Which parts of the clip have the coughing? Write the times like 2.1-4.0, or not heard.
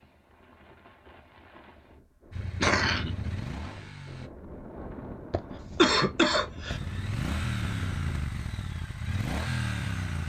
2.4-3.1, 5.3-6.8.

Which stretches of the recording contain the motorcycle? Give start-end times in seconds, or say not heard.
2.3-4.3, 6.7-10.2.